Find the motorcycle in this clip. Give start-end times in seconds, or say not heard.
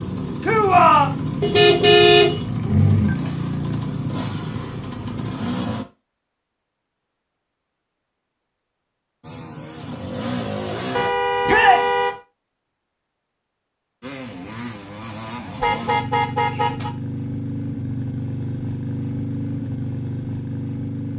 0.0-5.8, 9.2-11.1, 14.0-21.1.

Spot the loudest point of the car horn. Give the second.
2 s.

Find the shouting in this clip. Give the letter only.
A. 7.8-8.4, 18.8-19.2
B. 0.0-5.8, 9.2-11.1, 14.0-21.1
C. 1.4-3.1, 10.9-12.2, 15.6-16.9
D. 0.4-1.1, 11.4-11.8
D.